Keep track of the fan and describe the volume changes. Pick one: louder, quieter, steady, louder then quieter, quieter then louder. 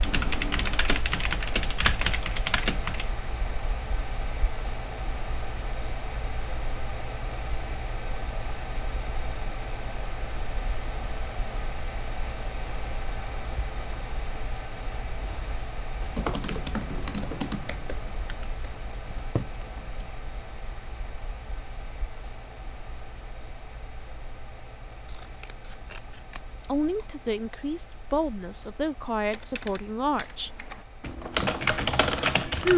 quieter.